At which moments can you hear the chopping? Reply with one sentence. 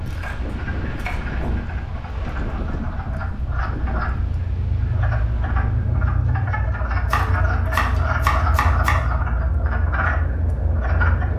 You can hear the chopping from 0.1 to 1.4 s and from 7.0 to 8.9 s.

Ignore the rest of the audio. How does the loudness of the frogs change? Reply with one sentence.
The volume of the frogs goes up.